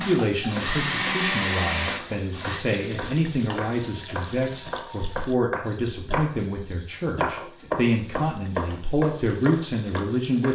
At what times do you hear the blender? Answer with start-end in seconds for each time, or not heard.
0.0-2.6.